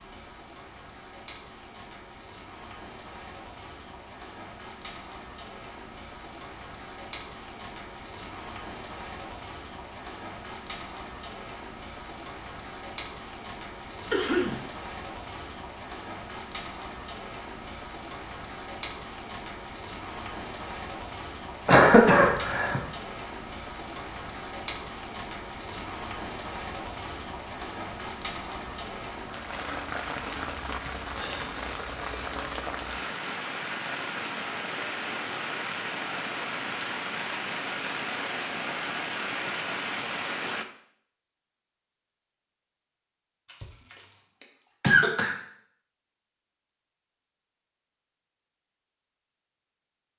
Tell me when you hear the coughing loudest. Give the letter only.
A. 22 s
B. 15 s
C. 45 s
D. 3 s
A.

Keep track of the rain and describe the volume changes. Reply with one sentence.
The loudness of the rain goes up.